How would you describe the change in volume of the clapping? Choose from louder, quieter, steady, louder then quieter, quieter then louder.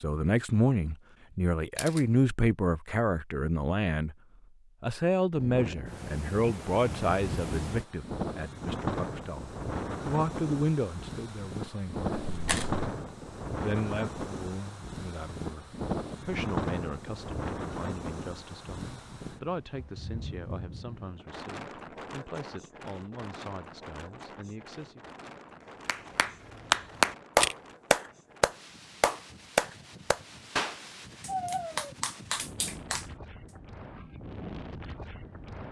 quieter.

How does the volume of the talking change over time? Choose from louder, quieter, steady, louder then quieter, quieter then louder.
quieter.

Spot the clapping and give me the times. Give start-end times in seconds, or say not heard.
25.9-33.0.